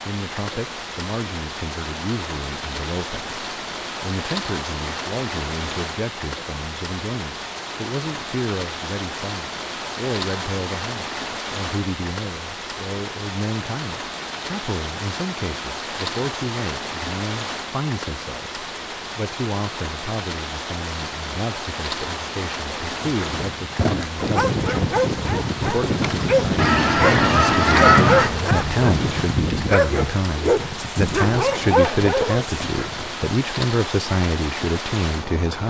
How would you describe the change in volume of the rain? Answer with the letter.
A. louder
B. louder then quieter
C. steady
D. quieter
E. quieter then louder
C.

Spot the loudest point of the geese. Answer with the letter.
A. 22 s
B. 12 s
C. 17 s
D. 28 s
D.